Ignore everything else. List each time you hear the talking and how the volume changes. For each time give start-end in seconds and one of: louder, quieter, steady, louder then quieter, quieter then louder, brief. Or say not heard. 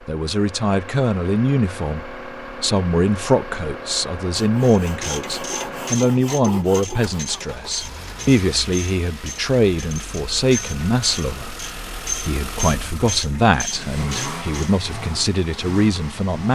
0.1-16.5 steady.